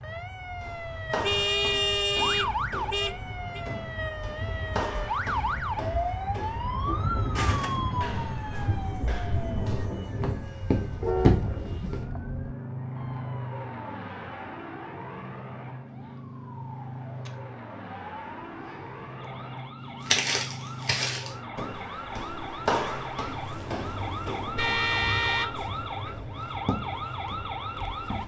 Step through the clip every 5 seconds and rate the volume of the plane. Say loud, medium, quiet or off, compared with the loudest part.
medium, loud, loud, medium, medium, medium.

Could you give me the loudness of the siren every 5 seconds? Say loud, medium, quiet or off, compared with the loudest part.
loud, loud, quiet, quiet, medium, loud.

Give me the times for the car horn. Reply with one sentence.
The car horn can be heard from 1.2 to 3.6 s, from 11.0 to 12.3 s and from 24.6 to 26.2 s.